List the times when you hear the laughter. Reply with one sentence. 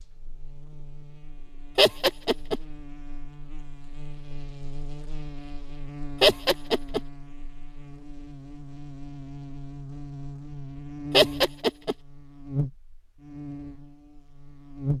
The laughter can be heard from 1.8 to 2.6 s, from 6.2 to 7.0 s and from 11.1 to 11.9 s.